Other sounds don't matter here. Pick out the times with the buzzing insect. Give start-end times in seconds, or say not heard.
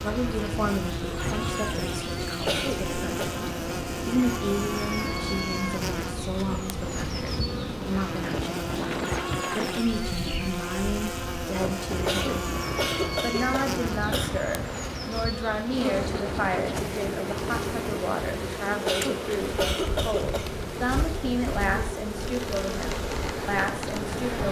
0.0-24.4.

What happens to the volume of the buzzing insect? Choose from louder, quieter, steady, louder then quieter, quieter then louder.
steady.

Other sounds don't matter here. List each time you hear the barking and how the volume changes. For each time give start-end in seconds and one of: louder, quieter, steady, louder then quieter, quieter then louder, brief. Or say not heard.
not heard.